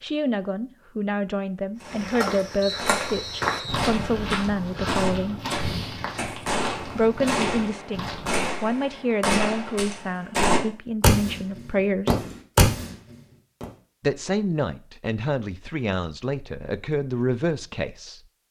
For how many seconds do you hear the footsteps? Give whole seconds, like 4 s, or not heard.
7 s.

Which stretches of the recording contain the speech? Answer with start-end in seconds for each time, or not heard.
0.0-5.4, 7.0-12.2, 14.0-18.2.